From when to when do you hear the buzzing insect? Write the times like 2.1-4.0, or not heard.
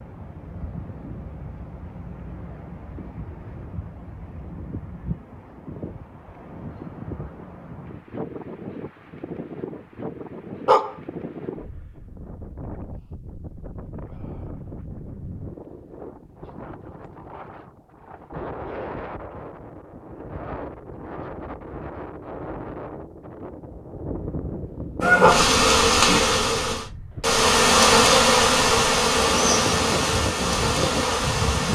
25.0-31.6.